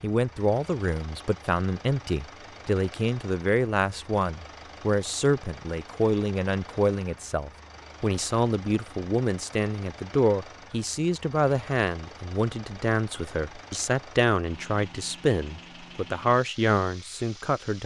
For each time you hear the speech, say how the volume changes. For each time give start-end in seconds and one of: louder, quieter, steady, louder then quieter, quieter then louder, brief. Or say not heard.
0.0-17.8 steady.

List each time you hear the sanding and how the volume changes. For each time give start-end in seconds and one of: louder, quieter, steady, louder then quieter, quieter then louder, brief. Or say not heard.
not heard.